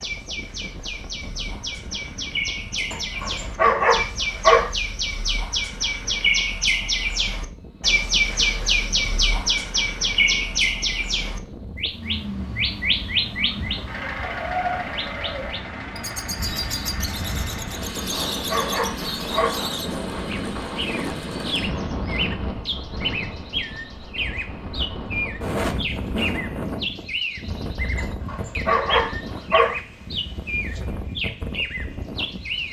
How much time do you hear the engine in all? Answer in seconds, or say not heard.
10 s.